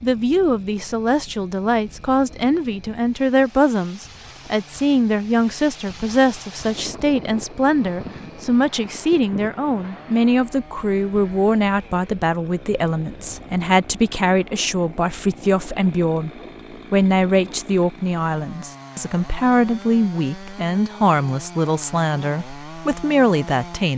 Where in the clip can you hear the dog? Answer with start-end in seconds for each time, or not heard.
not heard.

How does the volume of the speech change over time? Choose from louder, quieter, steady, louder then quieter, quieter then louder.
steady.